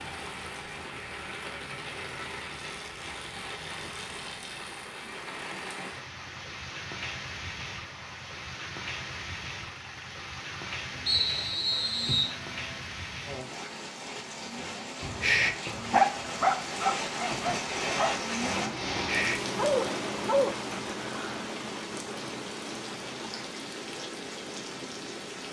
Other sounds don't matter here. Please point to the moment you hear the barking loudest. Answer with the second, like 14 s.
16 s.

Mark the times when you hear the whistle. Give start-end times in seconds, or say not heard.
11.1-12.3.